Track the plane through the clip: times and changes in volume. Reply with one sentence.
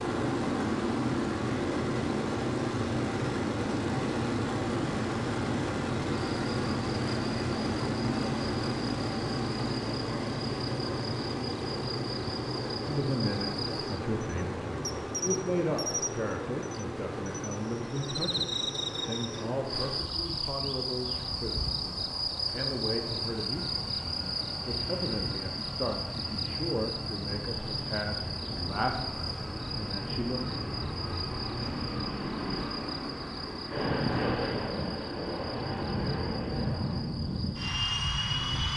You can hear the plane from 0.0 to 38.7 s, getting quieter then louder.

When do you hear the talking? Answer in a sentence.
You can hear the talking from 12.8 to 30.4 s.